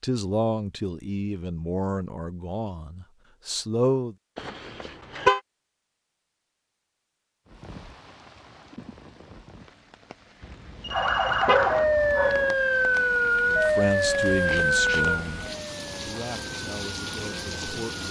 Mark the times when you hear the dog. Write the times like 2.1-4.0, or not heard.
11.5-12.6.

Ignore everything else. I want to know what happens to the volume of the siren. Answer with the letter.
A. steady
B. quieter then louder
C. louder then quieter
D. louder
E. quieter
E.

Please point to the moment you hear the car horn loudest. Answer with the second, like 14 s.
5 s.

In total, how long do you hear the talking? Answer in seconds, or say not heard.
9 s.